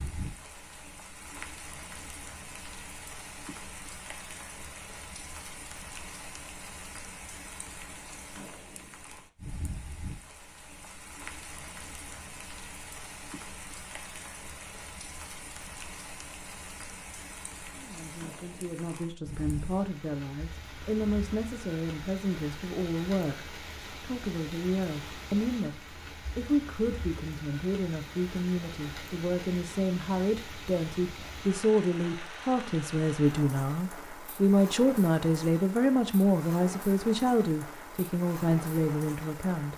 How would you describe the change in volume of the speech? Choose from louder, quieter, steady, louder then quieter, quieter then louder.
louder.